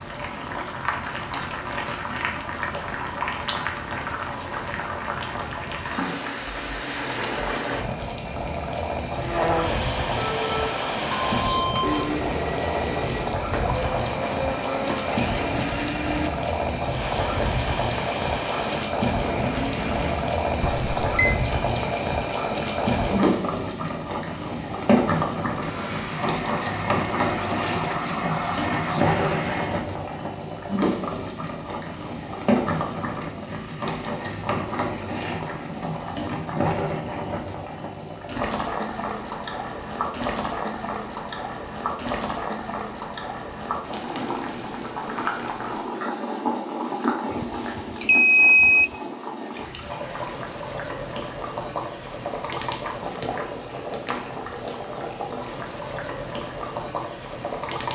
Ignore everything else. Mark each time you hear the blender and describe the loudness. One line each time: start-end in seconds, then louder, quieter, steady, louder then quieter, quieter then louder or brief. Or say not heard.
9.1-20.4 steady
25.6-29.9 steady.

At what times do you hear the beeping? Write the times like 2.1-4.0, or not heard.
10.2-12.2, 20.6-21.4, 47.3-49.0.